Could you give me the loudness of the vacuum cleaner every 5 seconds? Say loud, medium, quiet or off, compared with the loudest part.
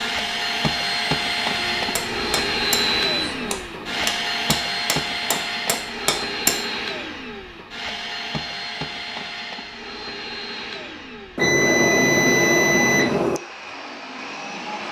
loud, medium, medium.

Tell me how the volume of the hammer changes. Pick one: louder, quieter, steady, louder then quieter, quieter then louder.
quieter then louder.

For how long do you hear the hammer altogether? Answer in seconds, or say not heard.
5 s.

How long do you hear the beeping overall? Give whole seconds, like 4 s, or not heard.
4 s.